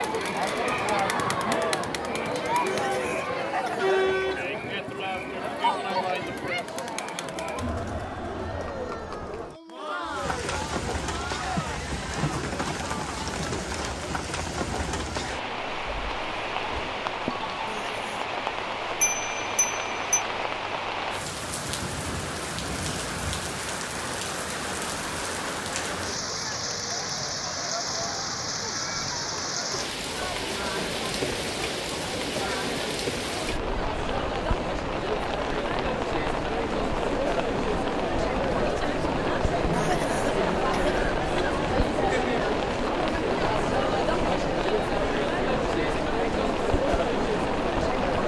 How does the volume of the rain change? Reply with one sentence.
The loudness of the rain stays about the same.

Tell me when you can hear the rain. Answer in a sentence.
You can hear the rain from 10.0 to 48.2 s.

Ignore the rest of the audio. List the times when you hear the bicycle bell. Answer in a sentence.
You can hear the bicycle bell from 19.0 to 20.2 s.